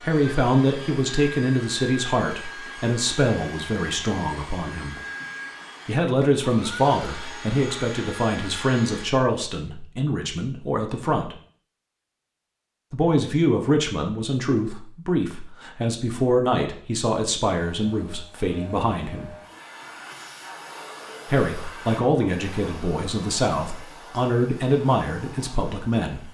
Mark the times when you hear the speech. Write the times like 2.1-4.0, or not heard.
0.0-5.0, 5.8-11.3, 12.9-19.4, 21.2-26.3.